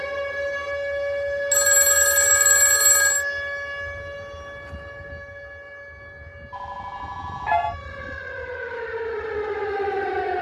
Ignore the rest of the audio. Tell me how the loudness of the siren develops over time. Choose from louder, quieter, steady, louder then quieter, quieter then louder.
quieter then louder.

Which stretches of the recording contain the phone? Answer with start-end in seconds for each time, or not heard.
1.5-3.2, 6.5-7.8.